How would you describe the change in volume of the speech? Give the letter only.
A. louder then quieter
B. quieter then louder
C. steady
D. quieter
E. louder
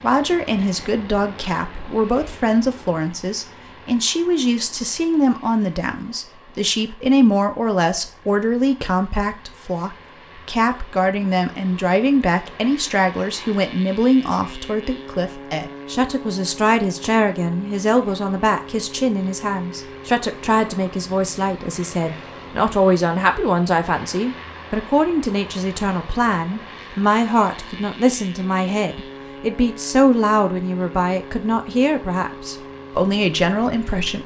C.